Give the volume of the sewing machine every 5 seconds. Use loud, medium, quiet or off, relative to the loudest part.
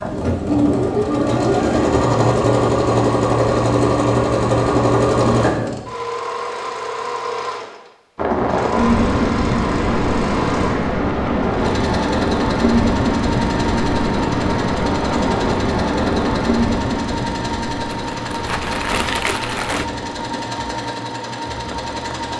loud, medium, medium, medium, medium.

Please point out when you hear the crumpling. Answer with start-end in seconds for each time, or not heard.
17.9-19.9.